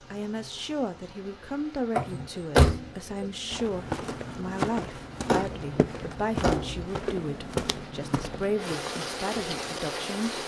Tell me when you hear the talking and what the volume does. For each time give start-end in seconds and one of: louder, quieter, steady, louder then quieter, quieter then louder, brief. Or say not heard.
0.1-10.4 steady.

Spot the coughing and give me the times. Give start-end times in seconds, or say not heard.
not heard.